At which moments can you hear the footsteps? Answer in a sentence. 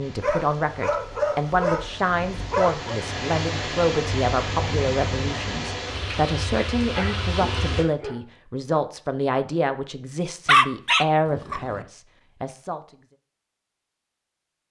You can't hear the footsteps here.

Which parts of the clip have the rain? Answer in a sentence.
You can hear the rain from 0.0 to 7.8 s.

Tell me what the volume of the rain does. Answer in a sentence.
The loudness of the rain goes up.